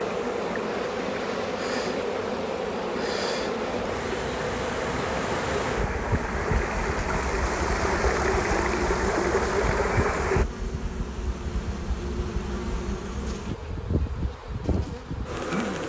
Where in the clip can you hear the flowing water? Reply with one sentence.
The flowing water can be heard from 0.0 to 10.4 s.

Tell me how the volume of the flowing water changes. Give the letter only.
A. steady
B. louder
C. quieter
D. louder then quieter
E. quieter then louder
B.